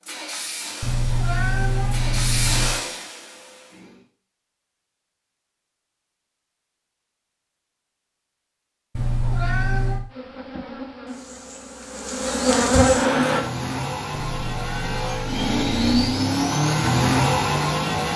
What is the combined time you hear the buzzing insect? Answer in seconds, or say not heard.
3 s.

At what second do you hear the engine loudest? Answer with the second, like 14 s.
17 s.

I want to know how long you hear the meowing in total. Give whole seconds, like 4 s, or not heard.
5 s.